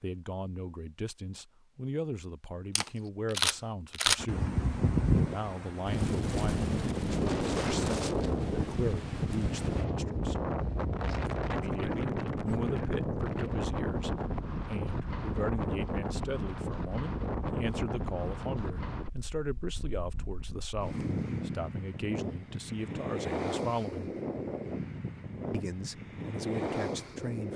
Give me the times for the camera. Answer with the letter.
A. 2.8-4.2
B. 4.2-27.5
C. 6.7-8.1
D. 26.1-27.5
A.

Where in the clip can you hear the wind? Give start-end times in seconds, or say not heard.
4.2-27.5.